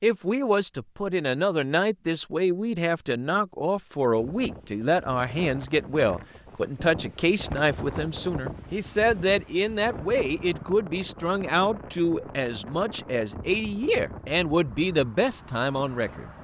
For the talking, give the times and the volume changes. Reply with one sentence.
The talking can be heard from 0.0 to 16.3 s, at a steady volume.